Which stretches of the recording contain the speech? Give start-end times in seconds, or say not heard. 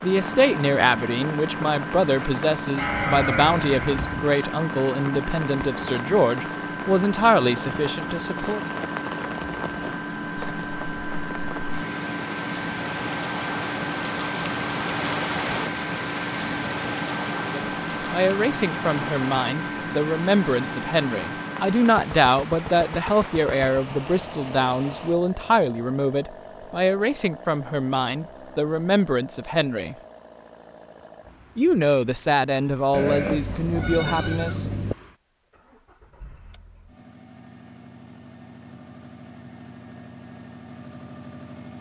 0.0-8.6, 17.4-29.9, 31.6-34.6.